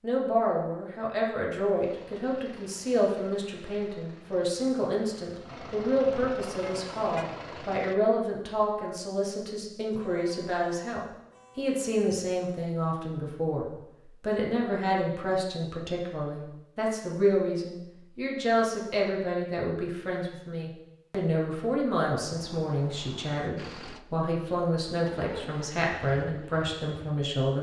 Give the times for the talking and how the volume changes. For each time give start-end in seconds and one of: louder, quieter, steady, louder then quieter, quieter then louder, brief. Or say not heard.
0.0-27.5 steady.